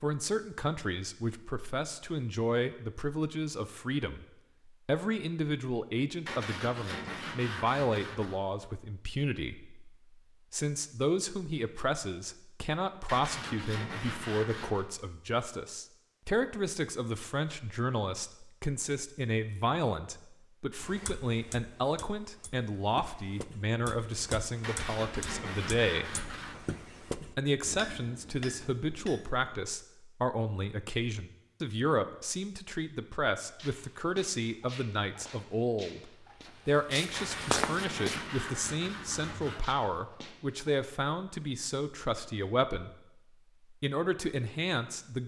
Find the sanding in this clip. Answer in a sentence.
You can hear the sanding from 6.2 to 8.3 s, from 13.1 to 14.8 s, from 24.6 to 26.6 s and from 37.1 to 39.6 s.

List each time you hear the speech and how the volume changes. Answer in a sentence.
You can hear the speech from 0.0 to 26.3 s, at a steady volume; from 27.1 to 42.9 s, at a steady volume; and briefly from 43.7 to 45.2 s.